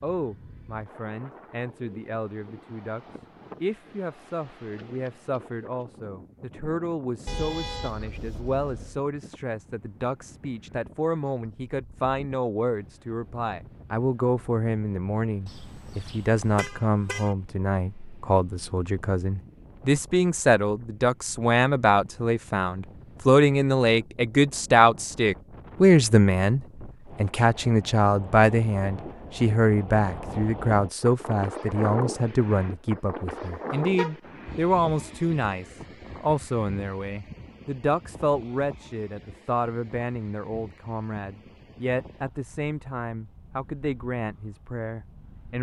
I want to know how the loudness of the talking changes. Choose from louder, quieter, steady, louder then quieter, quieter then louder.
louder then quieter.